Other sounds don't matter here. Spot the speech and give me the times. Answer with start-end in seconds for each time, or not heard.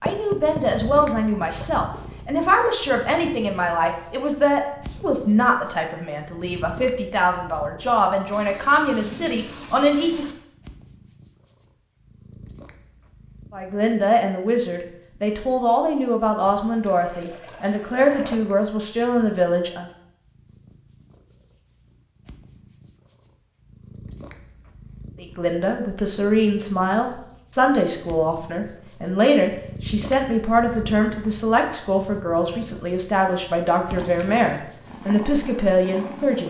0.0-10.2, 13.5-19.9, 25.2-36.4.